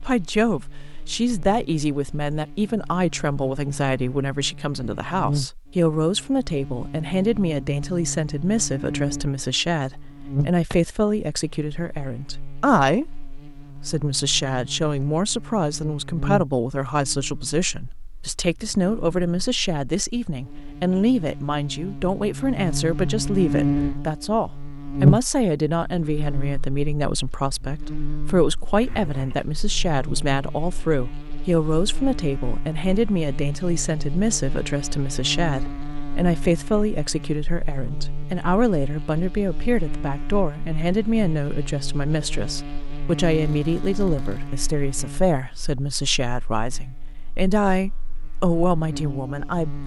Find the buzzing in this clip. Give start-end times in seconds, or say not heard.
0.0-49.8.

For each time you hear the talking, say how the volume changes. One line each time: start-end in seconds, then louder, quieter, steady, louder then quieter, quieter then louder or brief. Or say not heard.
0.0-49.8 steady.